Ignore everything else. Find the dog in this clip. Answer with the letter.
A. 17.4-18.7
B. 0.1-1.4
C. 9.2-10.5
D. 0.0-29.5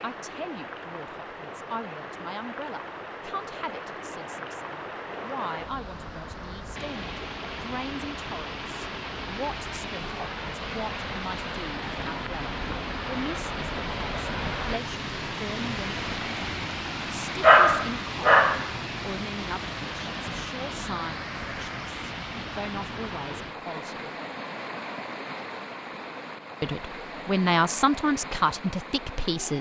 A.